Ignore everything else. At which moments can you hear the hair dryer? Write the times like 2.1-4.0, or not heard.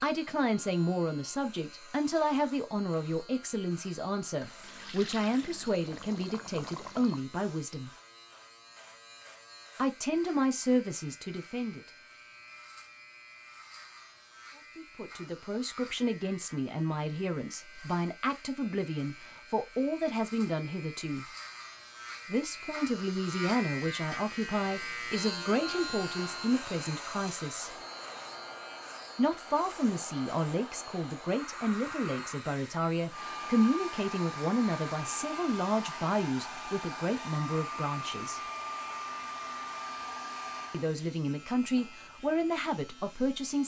25.9-40.9.